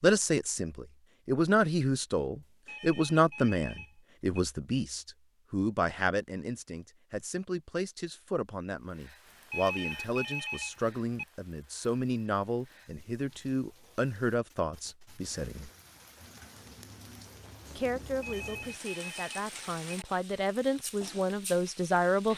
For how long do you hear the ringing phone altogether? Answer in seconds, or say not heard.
5 s.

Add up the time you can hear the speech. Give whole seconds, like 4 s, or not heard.
20 s.